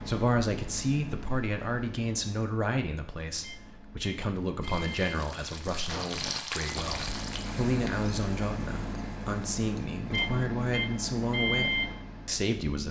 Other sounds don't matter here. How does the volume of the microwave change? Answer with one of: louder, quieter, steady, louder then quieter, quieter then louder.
louder.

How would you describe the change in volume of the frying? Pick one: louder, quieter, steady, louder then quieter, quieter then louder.
louder then quieter.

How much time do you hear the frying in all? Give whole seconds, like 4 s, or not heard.
5 s.